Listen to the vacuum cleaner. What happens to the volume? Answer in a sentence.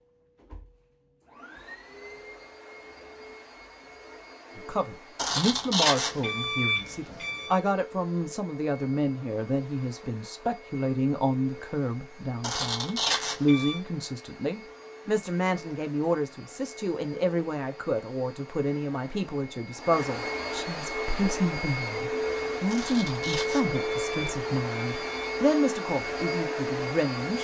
The loudness of the vacuum cleaner goes up.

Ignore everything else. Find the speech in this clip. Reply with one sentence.
You can hear the speech from 4.5 to 27.3 s.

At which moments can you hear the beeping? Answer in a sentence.
The beeping can be heard from 5.2 to 7.6 s, from 12.4 to 13.8 s and from 22.7 to 25.3 s.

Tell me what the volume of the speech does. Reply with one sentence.
The volume of the speech stays about the same.